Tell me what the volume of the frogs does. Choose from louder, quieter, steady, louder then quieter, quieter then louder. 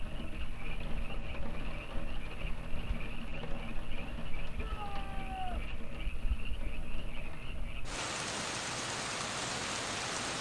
steady.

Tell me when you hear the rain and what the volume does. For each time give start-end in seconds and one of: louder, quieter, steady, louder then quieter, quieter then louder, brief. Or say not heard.
0.0-10.3 louder.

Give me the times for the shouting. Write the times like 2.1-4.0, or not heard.
4.5-5.7.